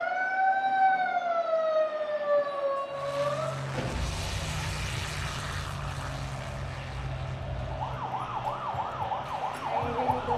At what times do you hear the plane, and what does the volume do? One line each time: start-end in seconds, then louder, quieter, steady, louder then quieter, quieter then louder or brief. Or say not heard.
2.9-10.3 quieter.